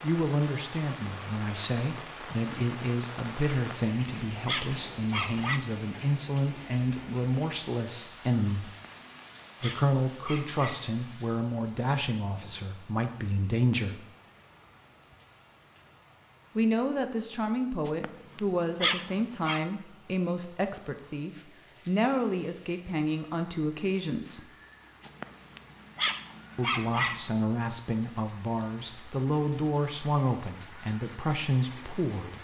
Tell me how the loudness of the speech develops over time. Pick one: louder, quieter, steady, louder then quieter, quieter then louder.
steady.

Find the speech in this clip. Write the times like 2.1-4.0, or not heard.
0.0-8.8, 9.6-14.1, 16.6-24.5, 26.6-32.3.